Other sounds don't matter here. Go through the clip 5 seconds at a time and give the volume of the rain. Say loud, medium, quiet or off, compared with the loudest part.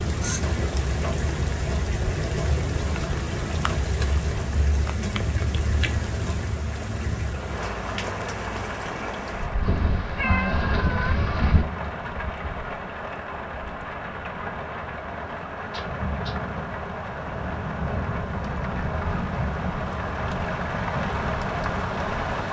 loud, loud, medium, loud, loud.